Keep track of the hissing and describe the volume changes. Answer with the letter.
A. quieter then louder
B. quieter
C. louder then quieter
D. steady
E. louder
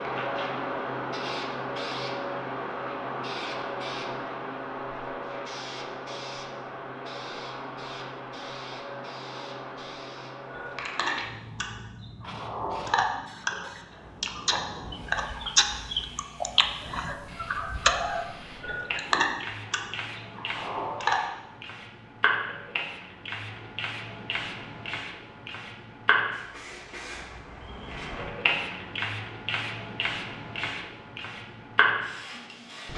A.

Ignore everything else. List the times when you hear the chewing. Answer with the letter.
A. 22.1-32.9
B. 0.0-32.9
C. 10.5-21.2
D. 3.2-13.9
C.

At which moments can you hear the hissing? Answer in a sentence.
You can hear the hissing from 0.0 to 32.9 s.